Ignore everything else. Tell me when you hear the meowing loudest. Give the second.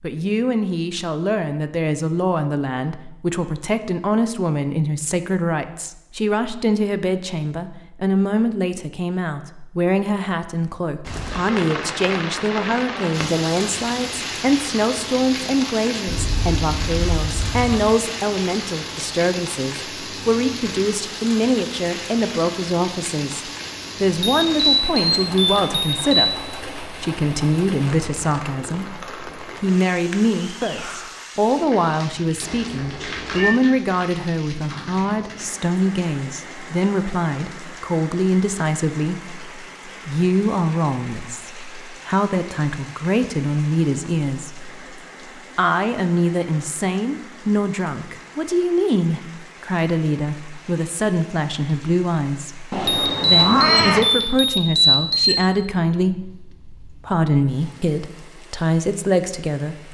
54 s.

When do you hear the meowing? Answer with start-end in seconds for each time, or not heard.
16.1-17.9, 32.4-33.6, 52.7-54.0.